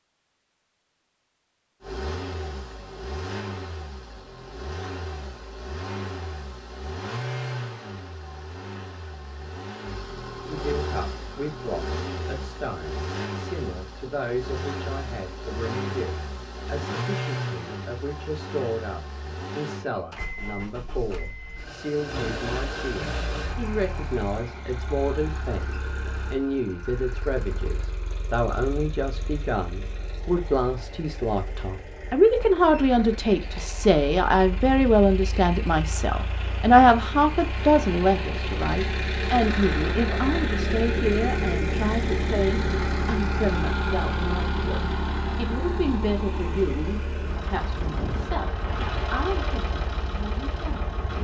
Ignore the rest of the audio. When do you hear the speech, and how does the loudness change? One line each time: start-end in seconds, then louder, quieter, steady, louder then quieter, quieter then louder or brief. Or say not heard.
10.4-51.1 louder then quieter.